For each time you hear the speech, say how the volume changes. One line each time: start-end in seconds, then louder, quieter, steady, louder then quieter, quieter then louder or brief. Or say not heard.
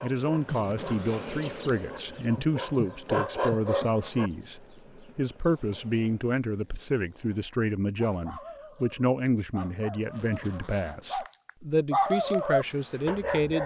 0.0-13.6 steady.